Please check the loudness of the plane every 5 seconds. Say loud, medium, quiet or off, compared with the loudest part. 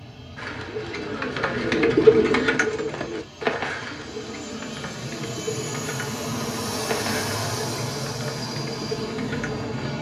medium, loud.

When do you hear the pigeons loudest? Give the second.
2 s.